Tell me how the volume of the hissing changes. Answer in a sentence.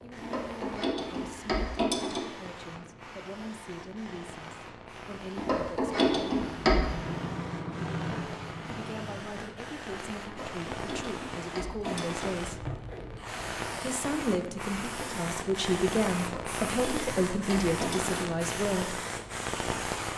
The volume of the hissing goes up.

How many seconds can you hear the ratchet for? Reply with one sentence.
You can hear the ratchet for 8 seconds altogether.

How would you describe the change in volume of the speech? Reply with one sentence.
The volume of the speech goes up.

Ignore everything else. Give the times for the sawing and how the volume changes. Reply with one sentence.
The sawing can't be heard in this clip.